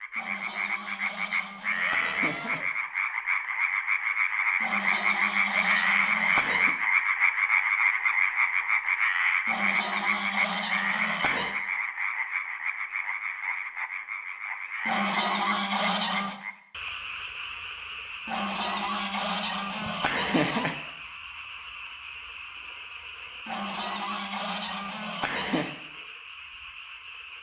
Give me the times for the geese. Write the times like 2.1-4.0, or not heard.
0.1-2.6, 4.6-6.8, 9.4-11.6, 14.8-16.4, 18.2-20.8, 23.4-25.7.